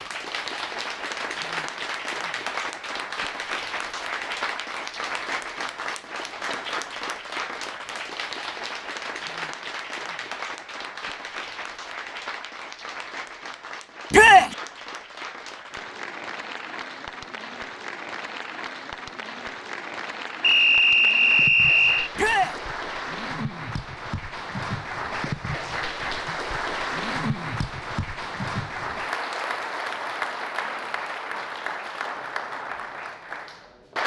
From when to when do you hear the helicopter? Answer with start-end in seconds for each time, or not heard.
not heard.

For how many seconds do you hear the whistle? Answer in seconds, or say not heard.
2 s.